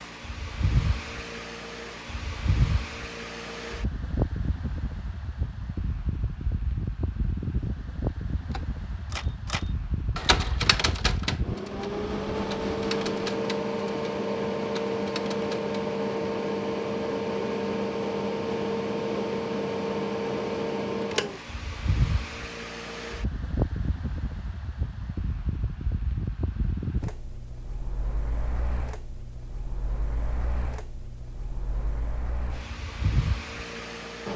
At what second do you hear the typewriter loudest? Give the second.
10 s.